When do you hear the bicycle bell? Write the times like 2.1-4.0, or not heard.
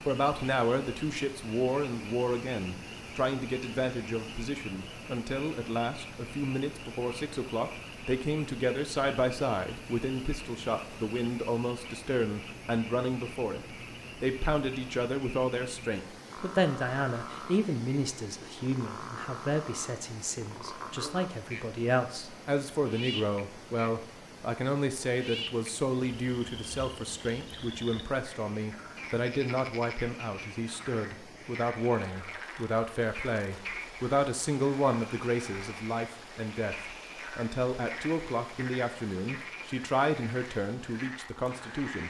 not heard.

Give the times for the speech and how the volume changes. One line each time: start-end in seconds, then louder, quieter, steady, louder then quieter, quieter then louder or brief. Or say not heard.
0.1-42.0 steady.